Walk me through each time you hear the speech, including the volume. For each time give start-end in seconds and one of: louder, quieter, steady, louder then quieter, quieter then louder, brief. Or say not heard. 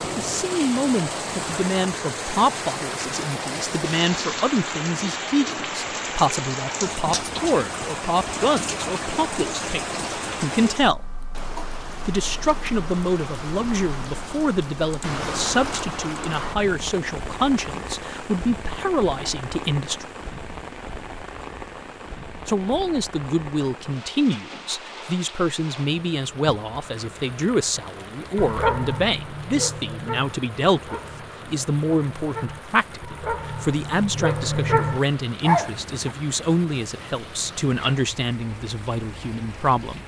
0.0-11.1 steady
12.1-20.1 steady
22.4-40.0 steady.